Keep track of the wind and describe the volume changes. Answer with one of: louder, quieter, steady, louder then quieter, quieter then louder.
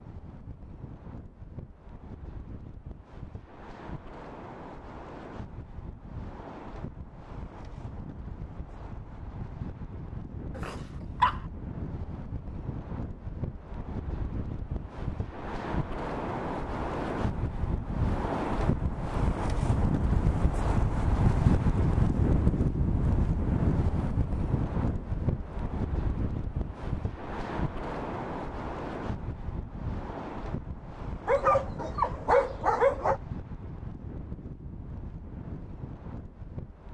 louder then quieter.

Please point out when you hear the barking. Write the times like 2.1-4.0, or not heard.
10.6-11.4, 31.2-33.2.